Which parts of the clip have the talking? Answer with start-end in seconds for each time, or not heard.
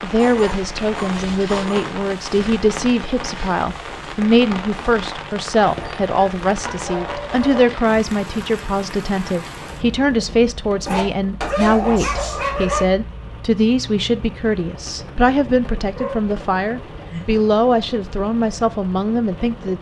0.0-19.7.